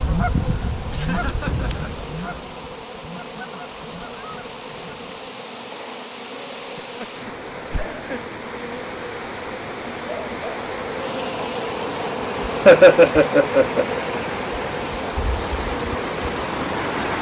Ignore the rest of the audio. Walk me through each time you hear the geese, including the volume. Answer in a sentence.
You can hear the geese from 0.0 to 5.2 s, getting quieter.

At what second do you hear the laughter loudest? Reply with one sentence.
The volume of the laughter peaks at 13 seconds.